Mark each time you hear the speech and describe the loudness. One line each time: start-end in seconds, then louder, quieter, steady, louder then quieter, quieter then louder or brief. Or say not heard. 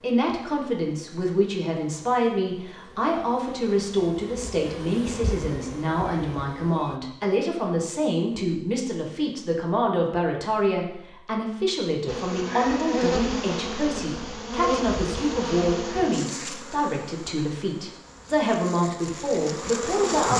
0.0-20.3 steady.